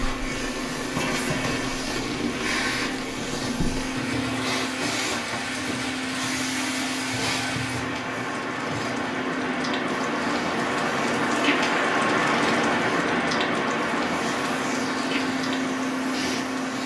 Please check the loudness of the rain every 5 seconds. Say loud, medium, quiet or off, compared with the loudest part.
medium, medium, loud, medium.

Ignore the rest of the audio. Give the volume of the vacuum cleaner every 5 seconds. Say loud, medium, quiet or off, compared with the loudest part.
loud, loud, medium, loud.